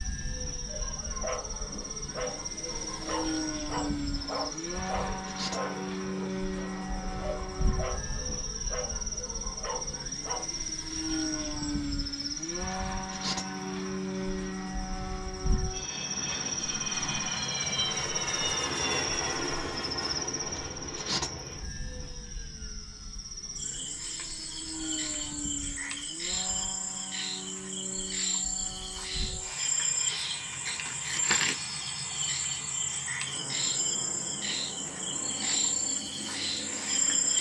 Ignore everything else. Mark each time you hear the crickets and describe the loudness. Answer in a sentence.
You can hear the crickets from 0.0 to 37.3 s, getting louder.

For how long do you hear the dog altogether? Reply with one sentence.
The dog can be heard for 10 seconds in total.